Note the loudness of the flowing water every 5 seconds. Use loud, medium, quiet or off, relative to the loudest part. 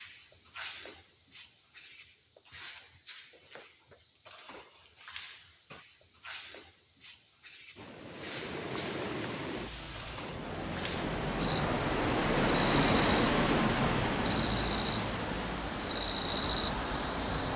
off, medium, loud, medium.